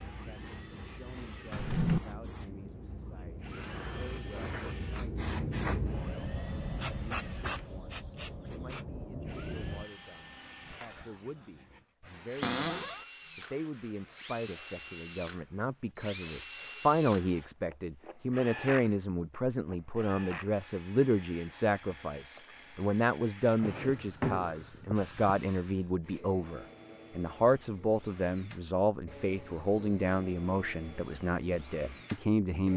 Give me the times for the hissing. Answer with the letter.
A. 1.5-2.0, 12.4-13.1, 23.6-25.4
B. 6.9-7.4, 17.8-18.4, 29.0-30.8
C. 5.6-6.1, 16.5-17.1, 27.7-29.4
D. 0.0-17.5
D.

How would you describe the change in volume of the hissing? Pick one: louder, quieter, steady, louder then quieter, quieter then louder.
louder then quieter.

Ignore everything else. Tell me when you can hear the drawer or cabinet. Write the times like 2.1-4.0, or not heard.
1.5-2.0, 12.4-13.1, 23.6-25.4.